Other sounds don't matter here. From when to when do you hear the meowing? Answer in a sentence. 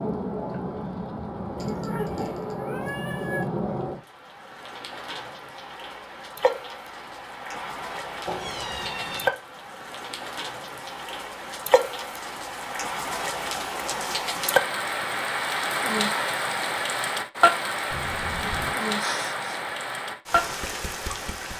The meowing can be heard from 1.6 to 3.5 s, from 8.2 to 9.3 s and from 17.9 to 18.8 s.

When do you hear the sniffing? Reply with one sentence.
You can hear the sniffing from 18.9 to 19.6 s.